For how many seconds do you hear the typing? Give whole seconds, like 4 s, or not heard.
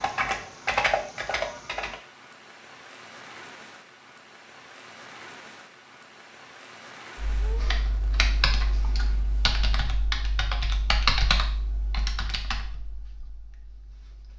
9 s.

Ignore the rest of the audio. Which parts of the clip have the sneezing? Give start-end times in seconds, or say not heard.
not heard.